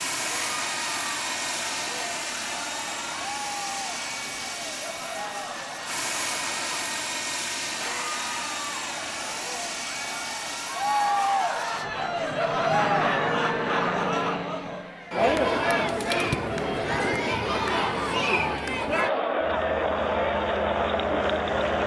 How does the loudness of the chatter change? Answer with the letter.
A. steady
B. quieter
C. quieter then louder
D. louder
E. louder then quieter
D.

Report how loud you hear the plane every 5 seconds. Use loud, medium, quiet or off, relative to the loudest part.
loud, loud, loud, medium, loud.